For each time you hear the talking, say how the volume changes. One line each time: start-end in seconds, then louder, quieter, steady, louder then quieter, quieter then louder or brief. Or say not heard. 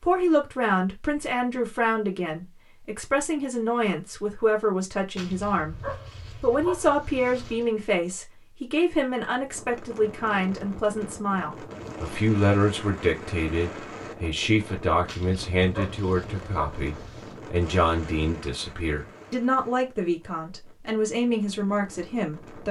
0.0-22.6 steady.